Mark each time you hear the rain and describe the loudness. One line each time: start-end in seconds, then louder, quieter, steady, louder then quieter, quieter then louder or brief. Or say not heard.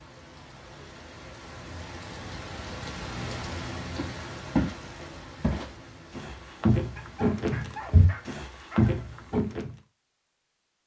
0.0-8.4 louder then quieter.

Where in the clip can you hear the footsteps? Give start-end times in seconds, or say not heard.
4.0-9.7.